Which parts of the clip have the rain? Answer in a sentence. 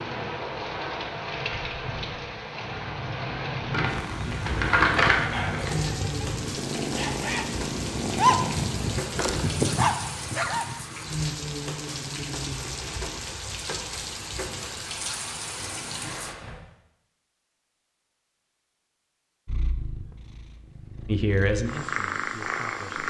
You can hear the rain from 0.0 to 16.4 s.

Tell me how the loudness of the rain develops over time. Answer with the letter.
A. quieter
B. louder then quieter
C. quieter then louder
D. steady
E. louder
D.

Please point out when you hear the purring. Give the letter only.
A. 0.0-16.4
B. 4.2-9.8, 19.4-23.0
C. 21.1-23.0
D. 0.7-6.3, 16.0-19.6
B.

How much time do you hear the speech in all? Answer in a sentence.
You can hear the speech for 2 seconds altogether.